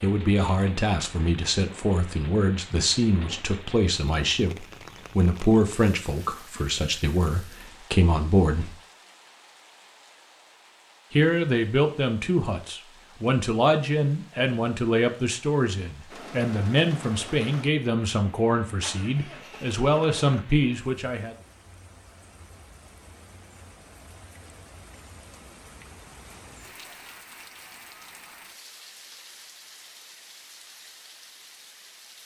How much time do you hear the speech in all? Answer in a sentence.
The speech can be heard for 19 seconds in total.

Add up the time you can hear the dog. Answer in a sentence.
You can't hear the dog here.